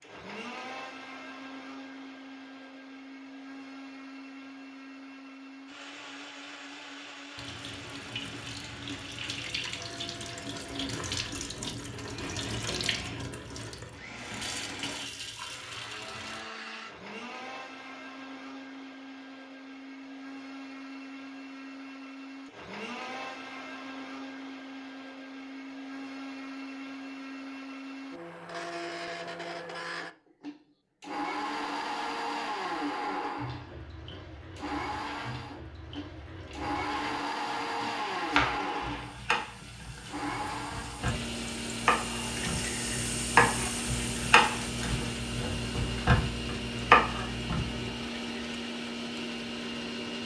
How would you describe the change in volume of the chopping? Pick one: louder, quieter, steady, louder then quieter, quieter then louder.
louder.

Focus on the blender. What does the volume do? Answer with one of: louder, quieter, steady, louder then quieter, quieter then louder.
louder.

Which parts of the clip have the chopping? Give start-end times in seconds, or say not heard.
38.3-47.9.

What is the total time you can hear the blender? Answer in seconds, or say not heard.
50 s.